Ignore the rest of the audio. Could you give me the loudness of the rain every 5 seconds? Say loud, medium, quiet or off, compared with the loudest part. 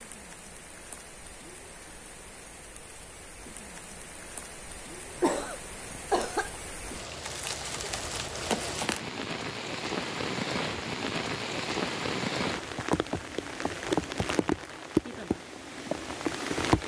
quiet, medium, loud, loud.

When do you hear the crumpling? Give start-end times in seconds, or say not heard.
7.2-9.1.